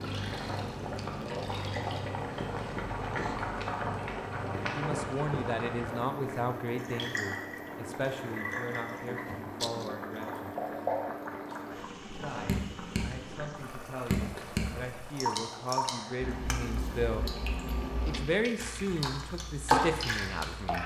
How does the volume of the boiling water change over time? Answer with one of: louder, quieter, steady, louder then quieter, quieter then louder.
quieter.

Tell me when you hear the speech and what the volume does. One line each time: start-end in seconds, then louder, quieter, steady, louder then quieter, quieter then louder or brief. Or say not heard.
4.7-10.6 quieter
12.1-17.3 louder
18.1-20.8 brief.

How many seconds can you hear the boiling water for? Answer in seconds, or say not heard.
21 s.